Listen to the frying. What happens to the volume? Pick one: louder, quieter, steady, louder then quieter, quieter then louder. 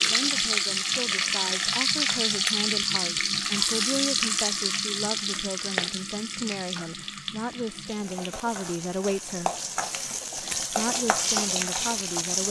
quieter then louder.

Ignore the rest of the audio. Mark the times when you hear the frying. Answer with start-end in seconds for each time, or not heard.
0.0-12.4.